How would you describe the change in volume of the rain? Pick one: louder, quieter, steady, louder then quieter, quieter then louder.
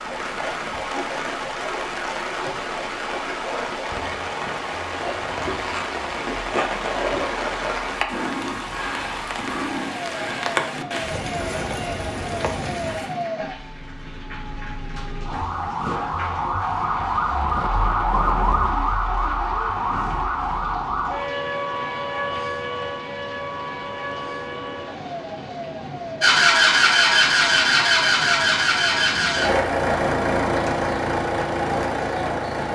quieter.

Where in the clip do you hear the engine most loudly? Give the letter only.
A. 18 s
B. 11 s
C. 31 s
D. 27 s
D.